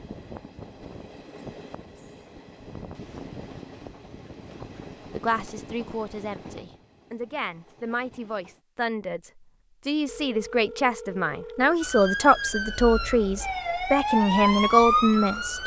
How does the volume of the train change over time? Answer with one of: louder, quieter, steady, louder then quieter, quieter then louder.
quieter.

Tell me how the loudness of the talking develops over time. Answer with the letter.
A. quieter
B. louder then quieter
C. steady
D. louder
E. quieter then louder
D.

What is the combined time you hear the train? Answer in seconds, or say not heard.
9 s.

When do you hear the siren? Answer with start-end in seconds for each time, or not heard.
11.8-15.6.